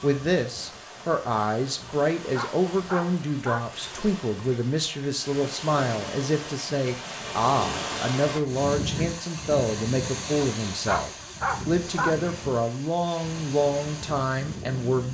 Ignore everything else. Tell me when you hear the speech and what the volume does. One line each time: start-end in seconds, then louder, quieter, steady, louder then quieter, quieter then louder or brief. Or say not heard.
0.0-15.0 steady.